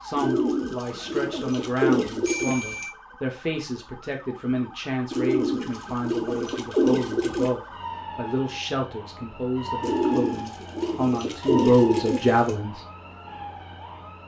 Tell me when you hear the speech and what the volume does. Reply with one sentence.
The speech can be heard from 0.0 to 12.8 s, getting louder.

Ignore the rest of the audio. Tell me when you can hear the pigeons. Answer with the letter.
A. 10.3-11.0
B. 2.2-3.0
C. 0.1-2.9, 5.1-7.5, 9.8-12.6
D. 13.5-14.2
C.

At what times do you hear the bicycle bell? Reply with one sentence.
You can hear the bicycle bell from 2.2 to 3.0 s.